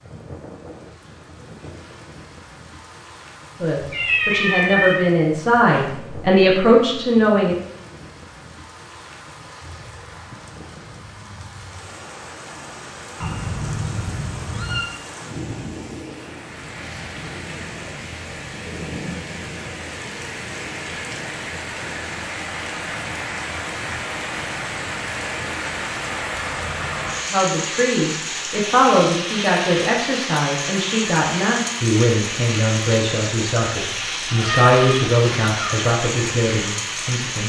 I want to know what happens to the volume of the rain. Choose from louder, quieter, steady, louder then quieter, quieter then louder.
louder.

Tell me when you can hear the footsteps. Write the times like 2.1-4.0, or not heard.
not heard.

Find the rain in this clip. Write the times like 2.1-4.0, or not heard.
0.0-37.4.